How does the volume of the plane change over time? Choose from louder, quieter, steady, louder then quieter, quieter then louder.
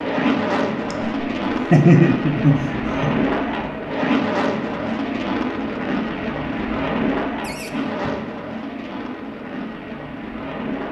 quieter.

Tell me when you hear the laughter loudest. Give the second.
2 s.